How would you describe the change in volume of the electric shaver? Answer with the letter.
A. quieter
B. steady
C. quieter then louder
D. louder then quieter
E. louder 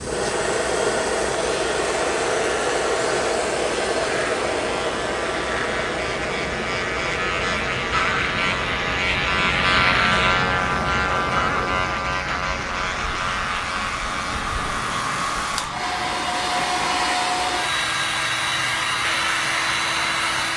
D.